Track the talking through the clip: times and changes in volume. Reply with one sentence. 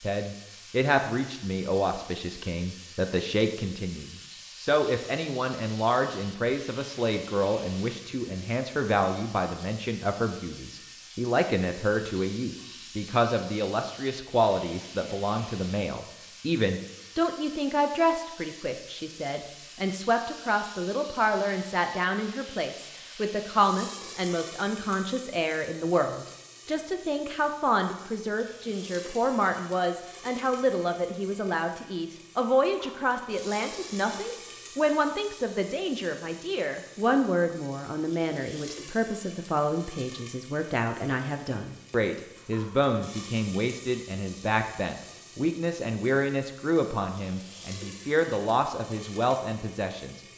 The talking can be heard from 0.0 to 50.2 s, at a steady volume.